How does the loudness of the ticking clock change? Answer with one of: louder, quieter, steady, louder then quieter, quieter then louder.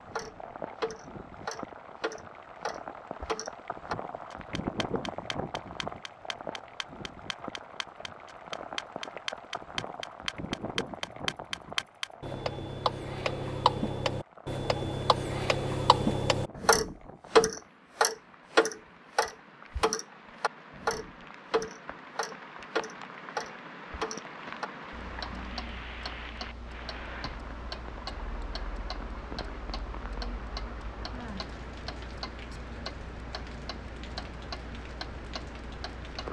louder then quieter.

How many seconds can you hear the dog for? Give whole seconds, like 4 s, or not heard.
not heard.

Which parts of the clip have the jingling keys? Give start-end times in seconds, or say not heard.
not heard.